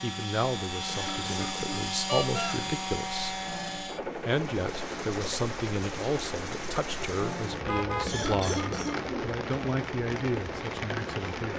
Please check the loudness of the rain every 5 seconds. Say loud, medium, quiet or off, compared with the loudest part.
medium, loud, loud.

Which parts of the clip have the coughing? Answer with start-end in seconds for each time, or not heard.
0.8-2.6, 8.1-9.1.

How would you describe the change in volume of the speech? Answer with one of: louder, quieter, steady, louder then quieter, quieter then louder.
steady.